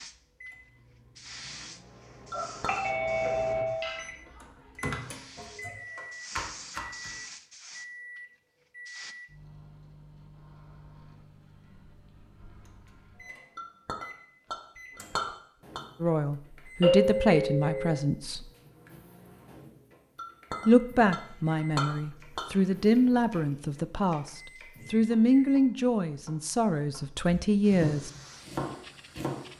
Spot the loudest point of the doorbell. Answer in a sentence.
The volume of the doorbell peaks at 17 seconds.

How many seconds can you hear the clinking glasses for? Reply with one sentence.
The clinking glasses can be heard for 5 seconds in total.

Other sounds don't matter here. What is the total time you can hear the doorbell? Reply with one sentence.
The doorbell can be heard for 3 seconds in total.